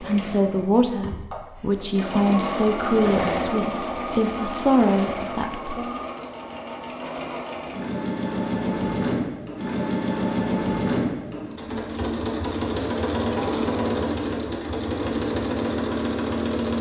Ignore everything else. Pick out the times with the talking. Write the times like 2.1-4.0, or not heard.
0.0-6.0.